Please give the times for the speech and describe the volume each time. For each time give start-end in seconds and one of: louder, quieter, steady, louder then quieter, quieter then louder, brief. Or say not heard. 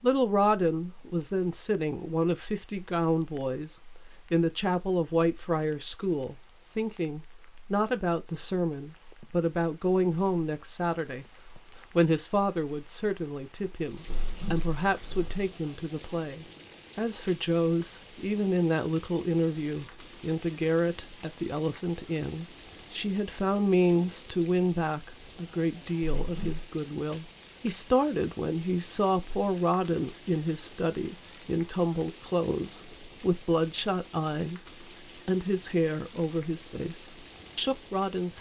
0.0-38.3 steady.